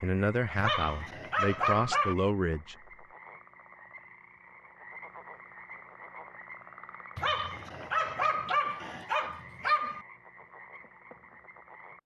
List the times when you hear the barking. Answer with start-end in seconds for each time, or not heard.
0.6-2.1, 7.2-10.1.